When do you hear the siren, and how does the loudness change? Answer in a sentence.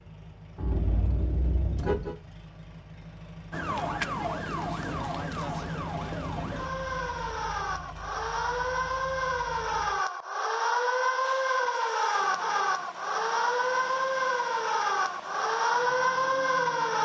You can hear the siren from 3.5 to 16.9 s, getting louder.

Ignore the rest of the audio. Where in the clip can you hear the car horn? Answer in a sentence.
The car horn can be heard from 0.6 to 2.1 s.